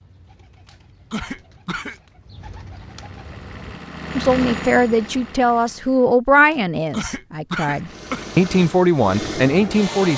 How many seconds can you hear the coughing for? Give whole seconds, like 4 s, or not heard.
3 s.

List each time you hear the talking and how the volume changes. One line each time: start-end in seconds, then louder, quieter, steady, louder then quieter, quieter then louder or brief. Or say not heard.
4.2-10.1 quieter then louder.